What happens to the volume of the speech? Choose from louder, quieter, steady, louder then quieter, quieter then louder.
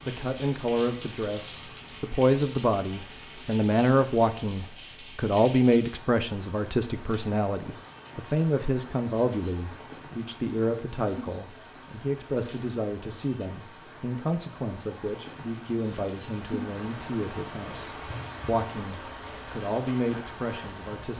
quieter.